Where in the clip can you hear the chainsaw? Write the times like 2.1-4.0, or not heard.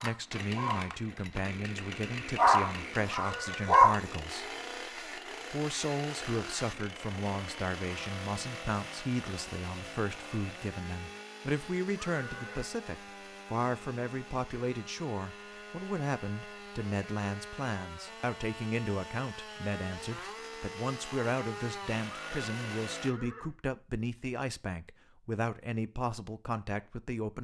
0.0-23.1.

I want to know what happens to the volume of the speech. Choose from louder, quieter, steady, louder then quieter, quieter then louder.
steady.